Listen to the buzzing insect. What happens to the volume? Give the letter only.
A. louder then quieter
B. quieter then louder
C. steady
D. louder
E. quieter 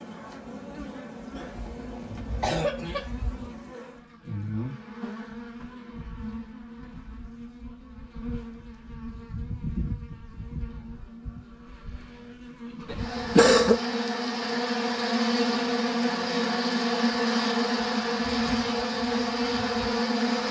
D.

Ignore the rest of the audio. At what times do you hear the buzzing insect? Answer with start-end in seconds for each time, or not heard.
0.0-20.4.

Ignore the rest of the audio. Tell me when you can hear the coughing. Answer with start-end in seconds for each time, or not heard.
1.4-3.0, 12.9-13.8.